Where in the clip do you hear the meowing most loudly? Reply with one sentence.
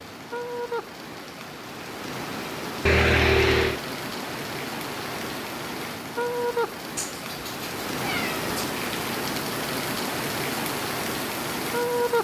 The loudest moment of the meowing is at 3 seconds.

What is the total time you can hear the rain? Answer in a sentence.
The rain can be heard for 12 seconds in total.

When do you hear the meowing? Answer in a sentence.
The meowing can be heard from 2.9 to 3.8 s and from 7.0 to 8.7 s.